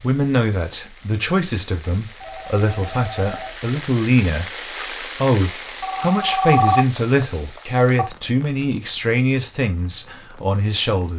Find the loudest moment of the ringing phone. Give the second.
7 s.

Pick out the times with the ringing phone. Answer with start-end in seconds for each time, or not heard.
2.1-3.6, 5.8-8.1.